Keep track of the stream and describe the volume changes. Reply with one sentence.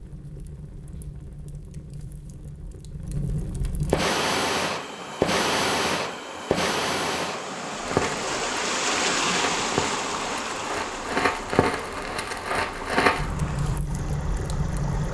The volume of the stream goes up, then down.